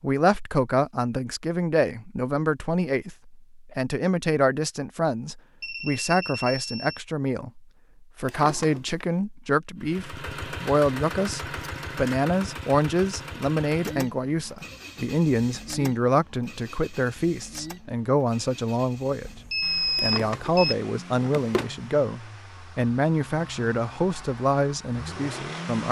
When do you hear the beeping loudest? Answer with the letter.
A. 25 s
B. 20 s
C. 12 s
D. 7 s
B.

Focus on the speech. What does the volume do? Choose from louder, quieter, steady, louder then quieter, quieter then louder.
steady.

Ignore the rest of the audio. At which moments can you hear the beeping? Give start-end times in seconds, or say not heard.
5.6-7.0, 19.2-20.8.